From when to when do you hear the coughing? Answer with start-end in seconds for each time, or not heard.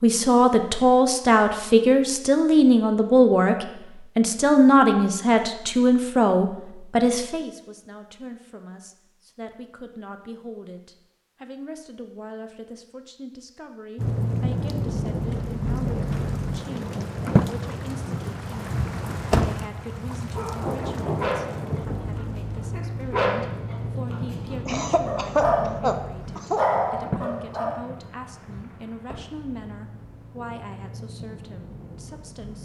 24.6-26.6.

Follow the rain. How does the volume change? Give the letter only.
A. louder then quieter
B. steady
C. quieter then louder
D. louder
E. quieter
E.